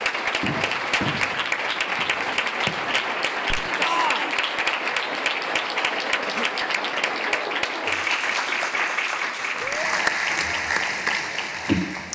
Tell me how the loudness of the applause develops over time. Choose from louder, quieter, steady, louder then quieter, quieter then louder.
steady.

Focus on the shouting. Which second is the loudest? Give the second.
4 s.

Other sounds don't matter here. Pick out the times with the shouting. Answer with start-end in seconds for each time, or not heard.
3.8-4.4, 9.6-10.0.